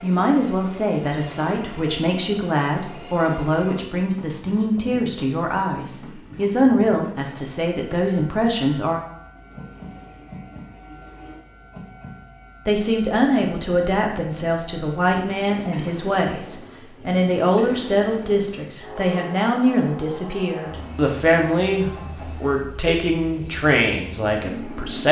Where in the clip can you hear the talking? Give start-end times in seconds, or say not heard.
0.0-9.0, 12.7-25.0.